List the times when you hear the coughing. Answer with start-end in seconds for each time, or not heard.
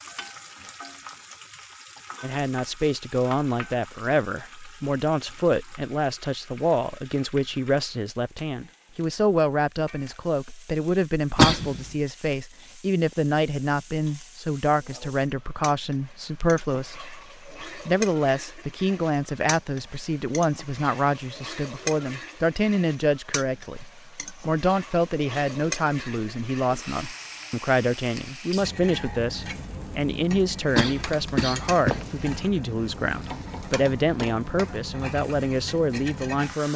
11.3-11.8, 30.8-32.4.